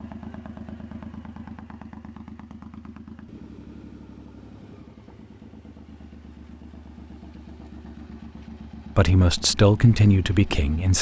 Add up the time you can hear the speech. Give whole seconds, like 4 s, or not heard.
2 s.